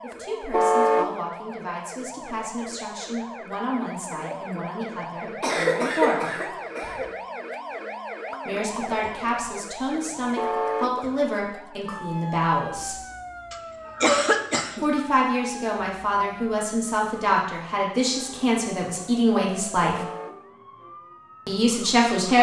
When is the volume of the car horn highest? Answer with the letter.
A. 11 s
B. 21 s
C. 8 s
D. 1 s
D.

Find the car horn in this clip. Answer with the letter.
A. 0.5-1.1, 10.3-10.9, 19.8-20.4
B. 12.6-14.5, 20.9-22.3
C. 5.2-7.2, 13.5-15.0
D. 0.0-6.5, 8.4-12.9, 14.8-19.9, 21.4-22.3
A.